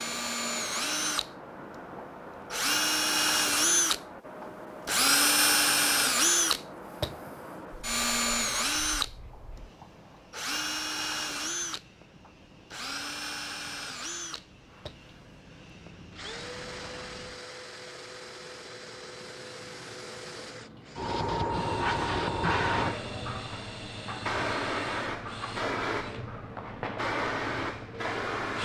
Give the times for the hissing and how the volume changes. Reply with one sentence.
You can hear the hissing from 0.0 to 28.6 s, getting quieter then louder.